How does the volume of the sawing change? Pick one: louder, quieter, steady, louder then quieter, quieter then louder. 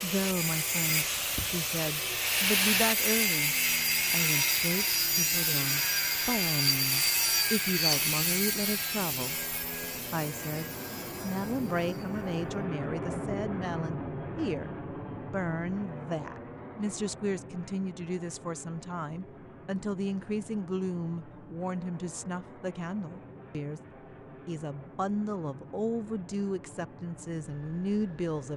quieter.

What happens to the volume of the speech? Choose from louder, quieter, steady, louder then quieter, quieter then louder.
steady.